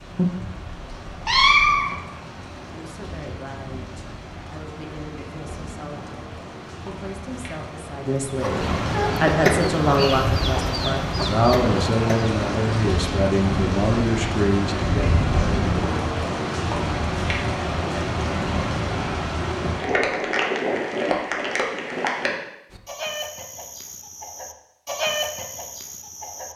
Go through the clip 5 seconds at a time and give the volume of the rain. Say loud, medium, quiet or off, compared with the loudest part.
quiet, medium, loud, loud, loud, off.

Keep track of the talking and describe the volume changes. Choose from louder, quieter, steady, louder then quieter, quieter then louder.
louder.